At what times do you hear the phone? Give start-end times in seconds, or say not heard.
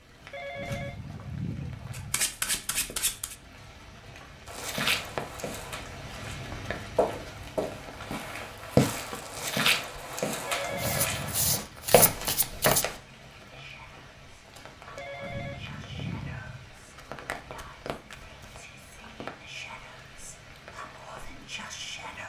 0.3-2.2, 10.4-11.6, 14.9-16.7.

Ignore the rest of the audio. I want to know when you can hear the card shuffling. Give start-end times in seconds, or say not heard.
1.9-3.4, 10.6-12.8, 16.9-18.6.